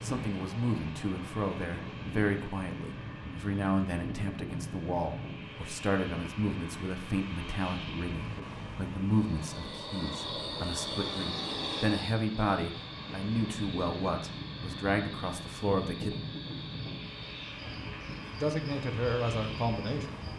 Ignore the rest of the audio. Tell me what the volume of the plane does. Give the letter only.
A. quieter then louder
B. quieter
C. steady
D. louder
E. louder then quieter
C.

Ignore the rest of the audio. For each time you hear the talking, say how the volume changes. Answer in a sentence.
You can hear the talking from 0.0 to 16.1 s, at a steady volume; and briefly from 18.4 to 20.2 s.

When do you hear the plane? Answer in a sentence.
The plane can be heard from 0.0 to 20.3 s.